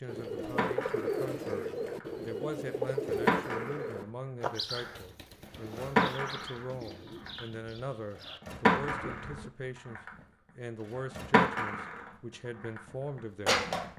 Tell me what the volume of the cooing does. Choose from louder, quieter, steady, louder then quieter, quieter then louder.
quieter.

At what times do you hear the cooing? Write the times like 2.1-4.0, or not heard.
0.1-9.5.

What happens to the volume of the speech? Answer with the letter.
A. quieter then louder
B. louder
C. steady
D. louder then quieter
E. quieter
C.